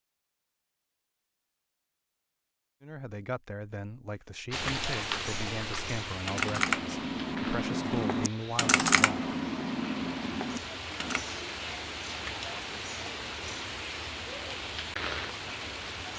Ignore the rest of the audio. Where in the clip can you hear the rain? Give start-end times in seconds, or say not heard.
4.5-16.1.